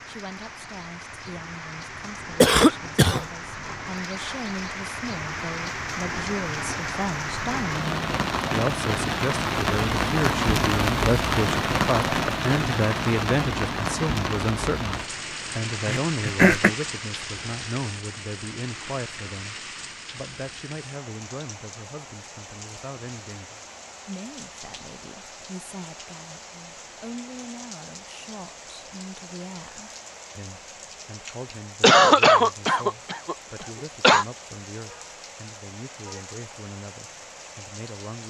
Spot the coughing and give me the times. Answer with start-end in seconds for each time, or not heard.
2.4-3.2, 15.8-16.7, 31.8-34.2.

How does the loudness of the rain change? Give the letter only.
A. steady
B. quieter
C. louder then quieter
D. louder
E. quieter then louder
C.